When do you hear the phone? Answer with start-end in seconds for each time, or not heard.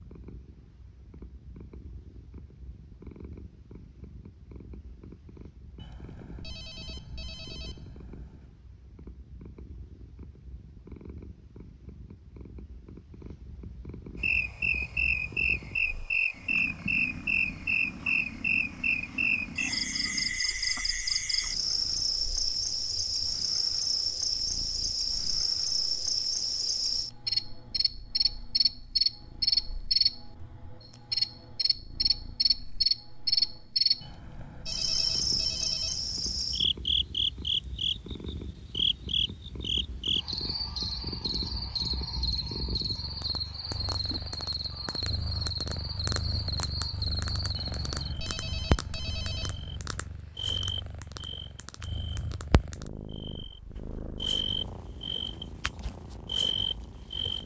5.8-8.5, 34.0-36.5, 47.5-49.9.